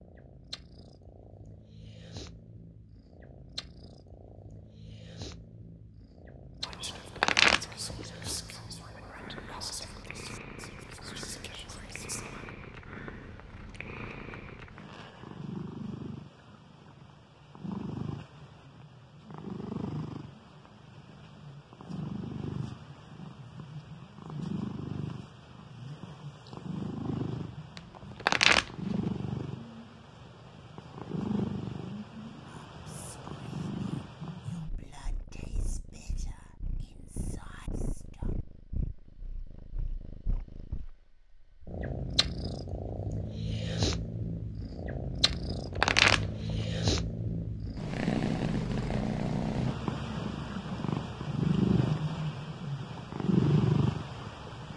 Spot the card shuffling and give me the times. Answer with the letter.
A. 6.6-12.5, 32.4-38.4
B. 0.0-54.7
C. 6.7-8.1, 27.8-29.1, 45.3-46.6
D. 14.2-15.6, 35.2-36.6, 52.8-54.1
C.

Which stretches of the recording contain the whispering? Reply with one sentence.
You can hear the whispering from 6.6 to 12.5 s and from 32.4 to 38.4 s.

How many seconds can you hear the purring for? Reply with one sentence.
The purring can be heard for 55 seconds in total.